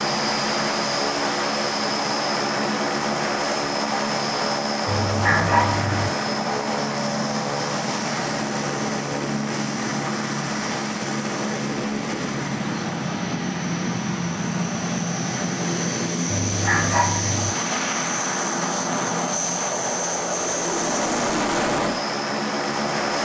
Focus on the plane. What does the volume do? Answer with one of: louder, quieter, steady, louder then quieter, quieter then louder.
steady.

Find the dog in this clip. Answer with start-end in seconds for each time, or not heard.
4.8-6.1, 16.4-17.5.